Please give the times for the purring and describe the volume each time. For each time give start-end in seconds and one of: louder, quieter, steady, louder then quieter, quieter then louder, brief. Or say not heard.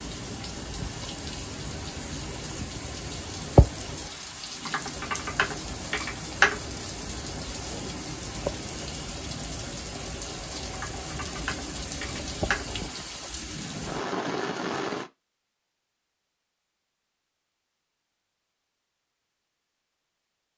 not heard.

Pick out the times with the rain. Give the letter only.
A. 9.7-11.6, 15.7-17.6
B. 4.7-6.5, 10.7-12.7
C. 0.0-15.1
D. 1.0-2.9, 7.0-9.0
C.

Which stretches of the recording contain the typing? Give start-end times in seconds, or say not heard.
4.7-6.5, 10.7-12.7.